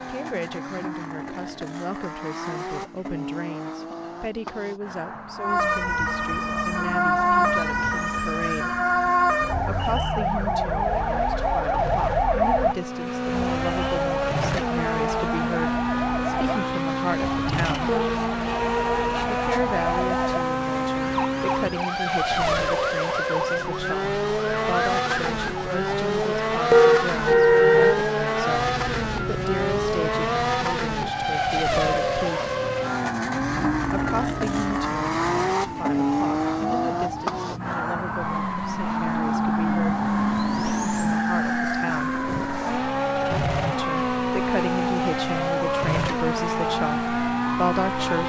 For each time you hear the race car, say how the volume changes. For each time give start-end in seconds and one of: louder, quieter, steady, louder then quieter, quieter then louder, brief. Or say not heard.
0.0-48.2 louder.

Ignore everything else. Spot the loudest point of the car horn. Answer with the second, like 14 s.
27 s.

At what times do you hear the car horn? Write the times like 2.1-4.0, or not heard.
17.9-19.2, 26.7-28.0.